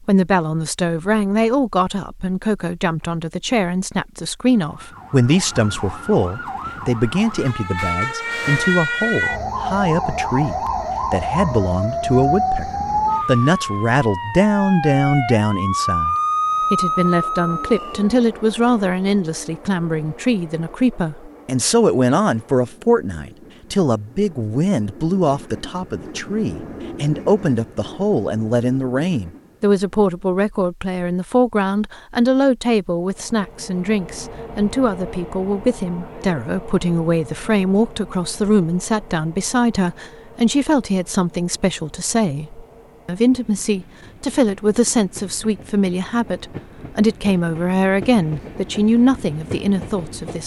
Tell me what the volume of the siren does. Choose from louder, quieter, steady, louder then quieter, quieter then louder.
louder.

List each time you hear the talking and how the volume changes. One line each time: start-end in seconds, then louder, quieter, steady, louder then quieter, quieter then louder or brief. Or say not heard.
0.1-50.4 steady.